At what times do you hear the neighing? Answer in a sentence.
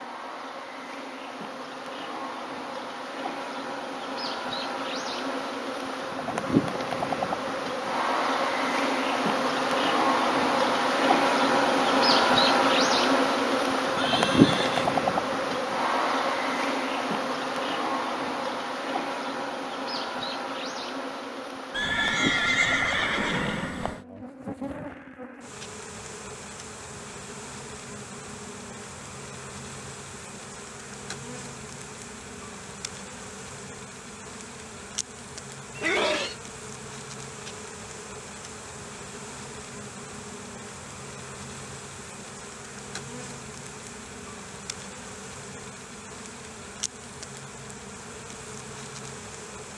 You can hear the neighing from 13.9 to 14.9 s, from 21.7 to 24.1 s and from 35.8 to 36.4 s.